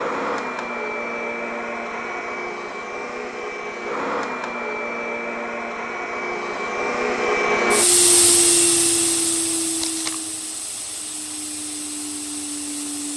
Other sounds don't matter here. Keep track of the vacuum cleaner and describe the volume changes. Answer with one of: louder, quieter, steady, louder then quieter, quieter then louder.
louder then quieter.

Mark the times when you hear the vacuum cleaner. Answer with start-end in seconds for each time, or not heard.
0.0-13.1.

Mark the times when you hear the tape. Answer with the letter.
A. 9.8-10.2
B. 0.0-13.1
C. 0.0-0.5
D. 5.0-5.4
A.